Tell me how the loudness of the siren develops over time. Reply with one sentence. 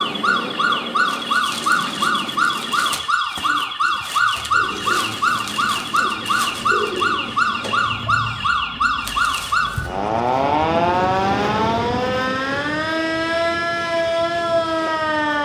The loudness of the siren stays about the same.